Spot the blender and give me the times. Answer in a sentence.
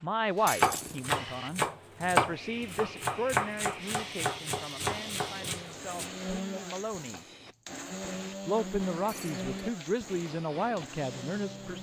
You can hear the blender from 3.8 to 11.7 s.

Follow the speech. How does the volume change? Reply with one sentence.
The loudness of the speech goes down, then up.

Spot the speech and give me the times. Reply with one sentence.
The speech can be heard from 0.0 to 7.2 s and from 8.4 to 11.7 s.